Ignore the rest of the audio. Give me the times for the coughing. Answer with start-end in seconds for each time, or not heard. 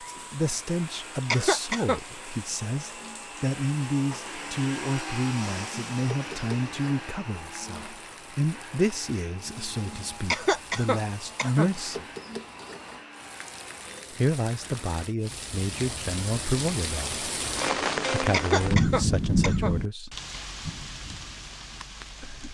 1.3-2.0, 10.3-11.7, 18.3-19.8.